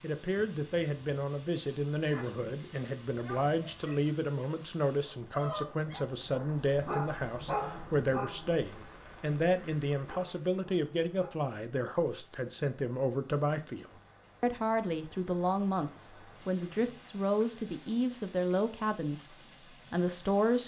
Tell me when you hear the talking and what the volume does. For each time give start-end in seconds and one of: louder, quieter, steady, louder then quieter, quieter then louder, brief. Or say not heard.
0.0-20.6 steady.